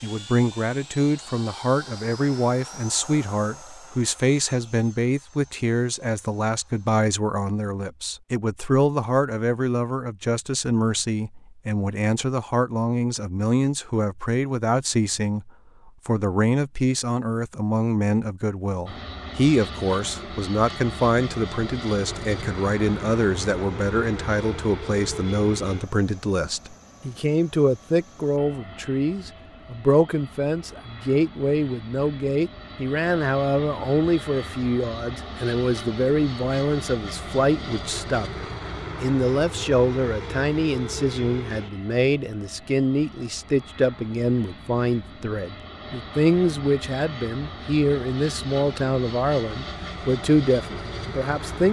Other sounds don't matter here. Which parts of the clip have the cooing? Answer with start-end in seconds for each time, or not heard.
not heard.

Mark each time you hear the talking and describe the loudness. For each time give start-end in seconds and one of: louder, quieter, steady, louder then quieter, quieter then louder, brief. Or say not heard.
0.0-51.6 steady.